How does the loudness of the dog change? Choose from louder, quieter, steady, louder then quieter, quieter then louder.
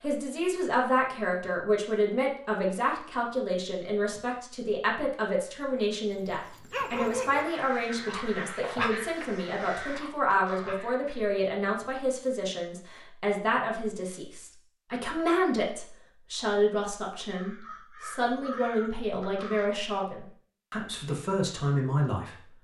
quieter.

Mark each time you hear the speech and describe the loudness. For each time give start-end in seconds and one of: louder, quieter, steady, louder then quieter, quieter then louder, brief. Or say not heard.
0.0-22.5 steady.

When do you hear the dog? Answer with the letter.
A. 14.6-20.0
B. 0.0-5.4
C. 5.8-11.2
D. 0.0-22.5
C.